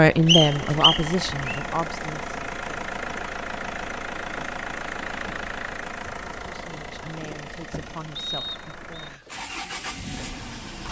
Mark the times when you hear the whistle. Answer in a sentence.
You can hear the whistle from 0.2 to 1.6 s and from 8.2 to 9.1 s.